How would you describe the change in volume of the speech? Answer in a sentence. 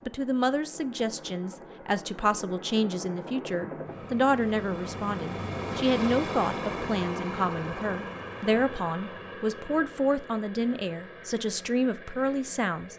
The loudness of the speech stays about the same.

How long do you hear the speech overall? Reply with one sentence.
The speech can be heard for 13 seconds in total.